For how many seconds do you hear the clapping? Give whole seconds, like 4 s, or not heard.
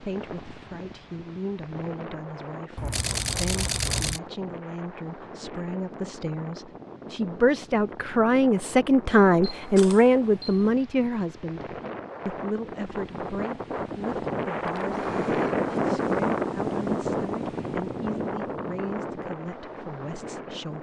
not heard.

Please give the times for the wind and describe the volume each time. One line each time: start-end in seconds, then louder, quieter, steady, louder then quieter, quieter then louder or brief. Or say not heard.
0.0-20.7 louder.